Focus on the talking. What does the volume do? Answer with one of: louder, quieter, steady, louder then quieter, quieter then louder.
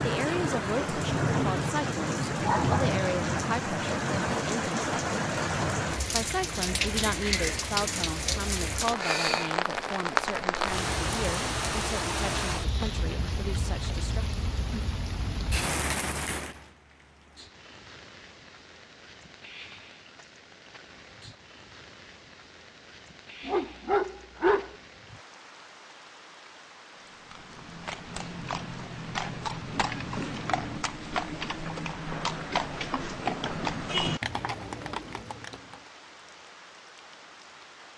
quieter.